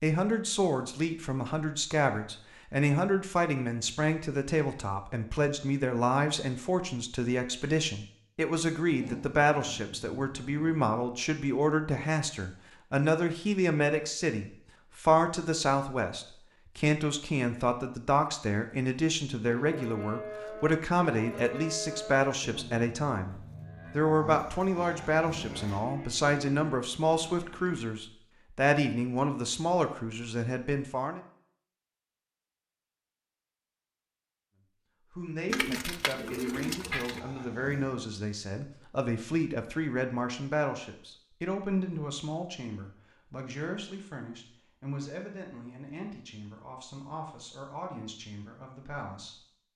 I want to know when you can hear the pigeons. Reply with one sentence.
You can hear the pigeons from 35.5 to 37.2 s.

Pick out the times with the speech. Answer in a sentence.
The speech can be heard from 0.0 to 31.2 s and from 35.1 to 49.7 s.